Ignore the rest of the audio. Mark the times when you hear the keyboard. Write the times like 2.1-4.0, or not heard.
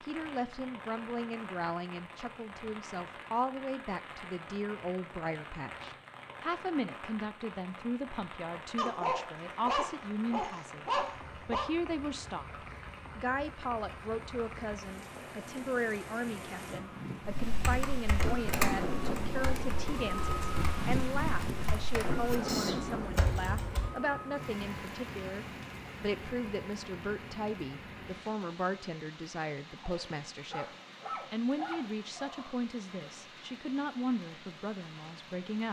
17.2-23.9.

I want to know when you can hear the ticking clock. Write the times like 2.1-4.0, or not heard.
not heard.